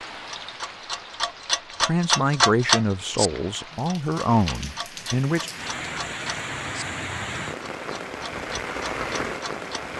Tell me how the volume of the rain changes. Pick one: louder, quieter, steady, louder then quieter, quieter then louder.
louder.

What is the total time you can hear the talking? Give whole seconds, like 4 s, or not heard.
4 s.